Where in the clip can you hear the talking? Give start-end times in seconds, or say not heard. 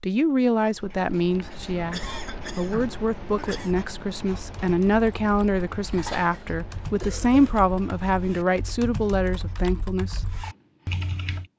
0.0-10.2.